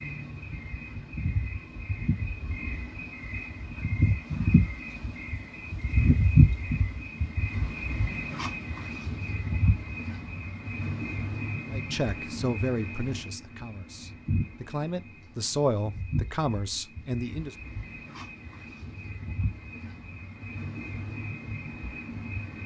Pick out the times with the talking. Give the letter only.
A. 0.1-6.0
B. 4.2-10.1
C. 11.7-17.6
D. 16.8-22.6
C.